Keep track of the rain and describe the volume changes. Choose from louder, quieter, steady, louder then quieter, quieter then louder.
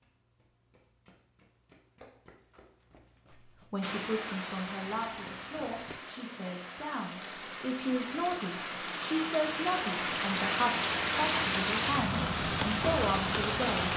louder.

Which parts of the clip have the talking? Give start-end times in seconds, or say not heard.
3.7-13.9.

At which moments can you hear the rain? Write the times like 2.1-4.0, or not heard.
3.8-13.9.